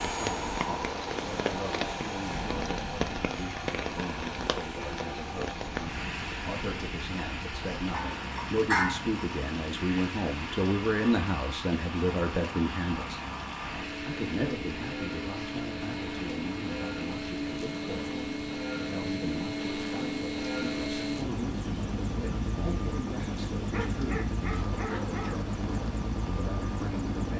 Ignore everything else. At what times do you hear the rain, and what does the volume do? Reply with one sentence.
The rain can be heard from 0.0 to 27.3 s, getting quieter.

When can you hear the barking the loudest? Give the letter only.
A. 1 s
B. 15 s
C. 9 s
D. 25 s
C.